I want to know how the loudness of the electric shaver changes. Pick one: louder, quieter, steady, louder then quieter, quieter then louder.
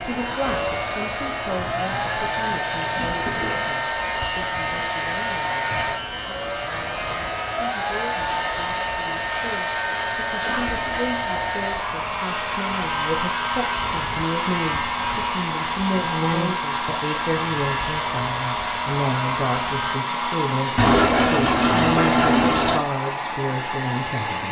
steady.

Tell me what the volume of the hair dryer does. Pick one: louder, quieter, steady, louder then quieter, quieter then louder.
steady.